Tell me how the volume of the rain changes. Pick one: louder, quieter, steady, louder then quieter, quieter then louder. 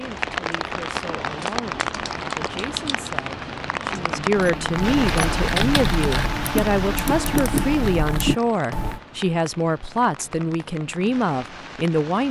quieter.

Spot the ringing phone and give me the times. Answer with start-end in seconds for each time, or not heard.
not heard.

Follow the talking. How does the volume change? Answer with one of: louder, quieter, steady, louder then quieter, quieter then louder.
louder.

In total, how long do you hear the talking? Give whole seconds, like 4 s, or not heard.
12 s.